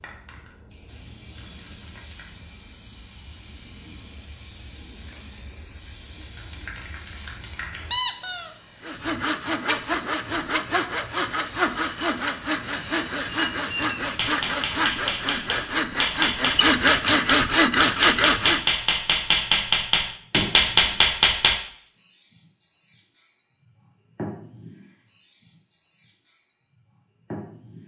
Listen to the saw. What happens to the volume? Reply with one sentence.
The loudness of the saw goes up.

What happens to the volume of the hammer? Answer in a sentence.
The volume of the hammer goes up.